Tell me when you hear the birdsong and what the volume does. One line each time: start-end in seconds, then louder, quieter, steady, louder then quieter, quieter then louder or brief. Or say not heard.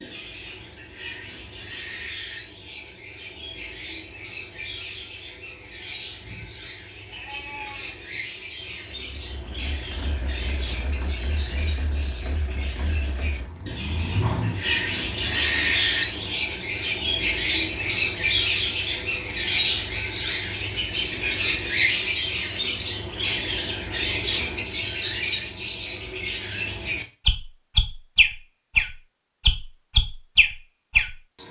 0.0-31.4 louder.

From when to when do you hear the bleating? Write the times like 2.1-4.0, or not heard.
6.2-8.1.